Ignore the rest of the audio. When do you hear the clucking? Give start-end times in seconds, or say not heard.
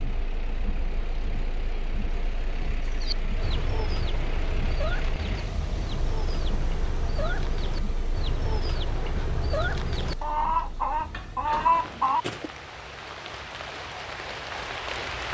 2.9-12.4.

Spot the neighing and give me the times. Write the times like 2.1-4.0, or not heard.
not heard.